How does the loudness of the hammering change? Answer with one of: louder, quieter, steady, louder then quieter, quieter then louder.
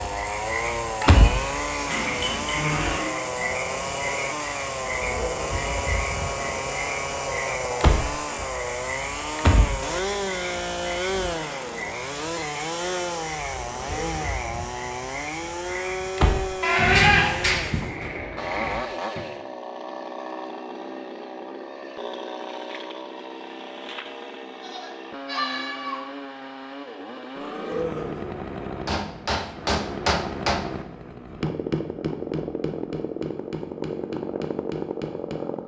quieter.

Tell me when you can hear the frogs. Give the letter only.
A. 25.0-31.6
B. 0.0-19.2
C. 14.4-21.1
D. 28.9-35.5
B.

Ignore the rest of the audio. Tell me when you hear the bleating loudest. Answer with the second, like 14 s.
17 s.